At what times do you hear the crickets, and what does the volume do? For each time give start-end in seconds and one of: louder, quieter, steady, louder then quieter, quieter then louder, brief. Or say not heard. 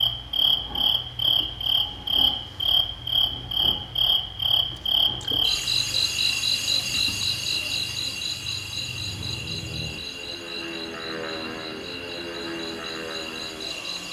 0.0-14.0 quieter.